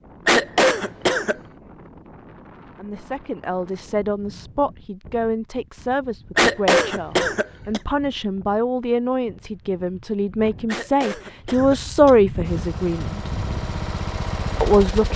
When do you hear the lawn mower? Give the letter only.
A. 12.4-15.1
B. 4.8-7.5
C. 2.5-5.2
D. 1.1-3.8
A.